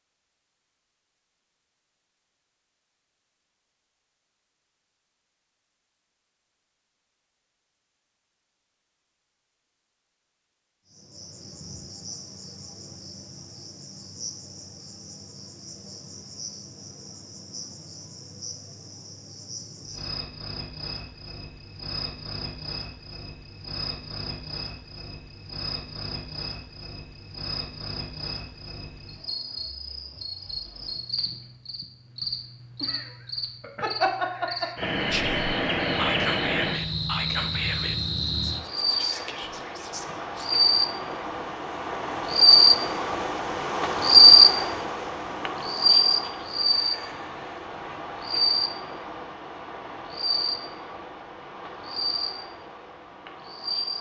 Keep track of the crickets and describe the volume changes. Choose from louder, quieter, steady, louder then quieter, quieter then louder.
louder then quieter.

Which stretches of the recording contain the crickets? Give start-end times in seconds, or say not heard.
10.9-53.9.